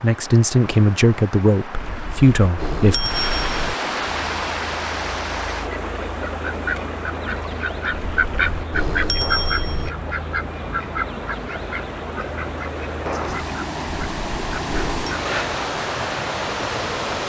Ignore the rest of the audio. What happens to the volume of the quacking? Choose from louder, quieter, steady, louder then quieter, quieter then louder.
louder then quieter.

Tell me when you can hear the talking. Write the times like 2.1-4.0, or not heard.
0.0-3.0.